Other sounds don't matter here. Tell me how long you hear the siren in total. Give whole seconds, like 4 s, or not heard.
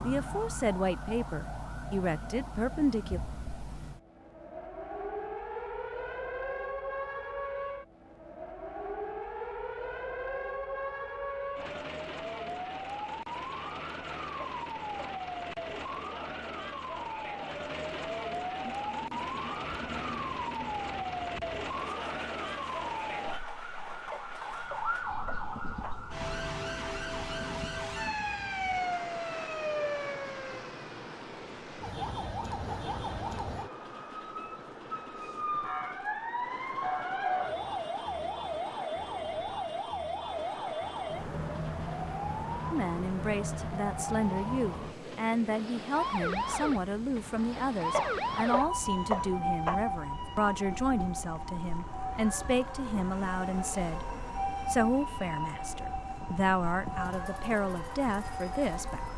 59 s.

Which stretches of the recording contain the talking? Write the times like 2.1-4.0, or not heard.
0.0-3.2, 42.7-59.1.